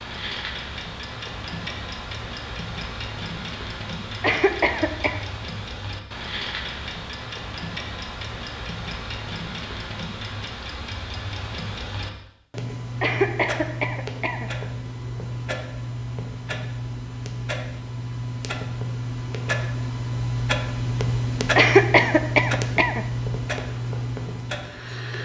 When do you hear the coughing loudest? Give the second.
22 s.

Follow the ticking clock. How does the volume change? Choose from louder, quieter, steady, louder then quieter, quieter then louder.
louder.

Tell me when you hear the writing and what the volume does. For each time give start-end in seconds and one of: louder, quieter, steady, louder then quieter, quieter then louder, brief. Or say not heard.
not heard.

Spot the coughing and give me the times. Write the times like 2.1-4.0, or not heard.
4.2-5.2, 13.0-14.5, 21.6-23.1.